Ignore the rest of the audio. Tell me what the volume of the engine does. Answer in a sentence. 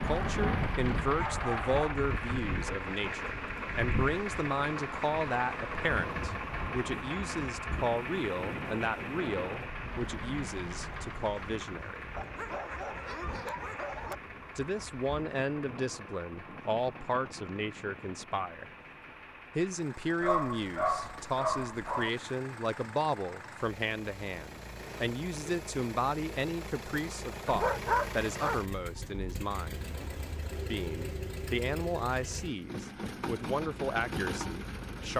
The loudness of the engine goes down, then up.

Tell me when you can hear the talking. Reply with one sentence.
You can hear the talking from 0.0 to 12.1 s, from 14.6 to 18.6 s, from 19.6 to 29.9 s and from 30.7 to 35.1 s.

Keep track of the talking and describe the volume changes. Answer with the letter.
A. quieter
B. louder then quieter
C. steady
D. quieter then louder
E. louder
C.